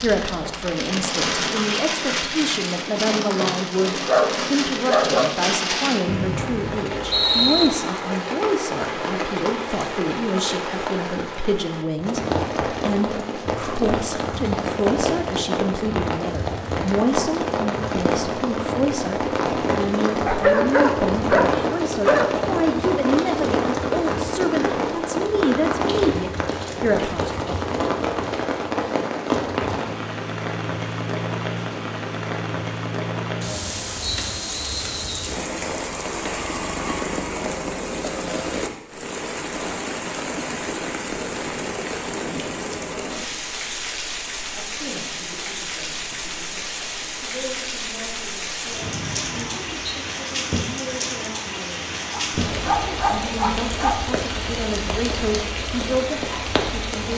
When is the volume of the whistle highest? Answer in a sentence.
The loudest moment of the whistle is at 7 seconds.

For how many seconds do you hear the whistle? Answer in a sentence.
The whistle can be heard for 4 seconds in total.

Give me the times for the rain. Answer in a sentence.
The rain can be heard from 0.0 to 57.1 s.